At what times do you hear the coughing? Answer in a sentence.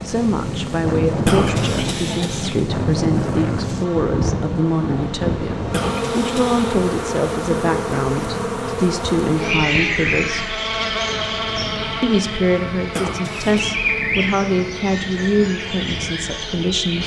You can hear the coughing from 1.2 to 2.6 s, from 5.7 to 6.8 s and from 12.9 to 13.7 s.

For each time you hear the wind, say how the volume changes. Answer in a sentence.
The wind can be heard from 0.0 to 17.0 s, getting quieter.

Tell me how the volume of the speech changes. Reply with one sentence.
The volume of the speech stays about the same.